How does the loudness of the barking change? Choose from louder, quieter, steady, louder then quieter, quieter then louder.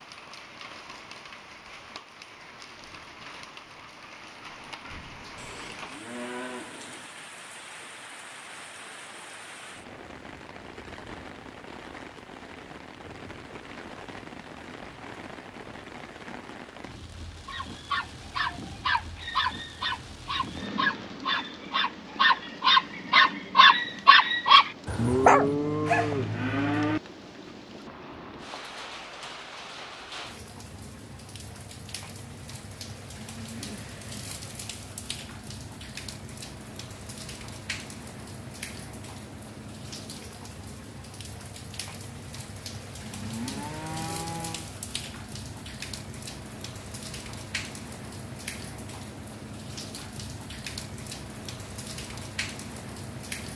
louder.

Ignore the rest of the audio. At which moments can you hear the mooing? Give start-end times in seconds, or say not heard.
5.3-7.1, 24.9-27.0, 43.1-44.7.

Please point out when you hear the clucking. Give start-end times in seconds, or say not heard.
not heard.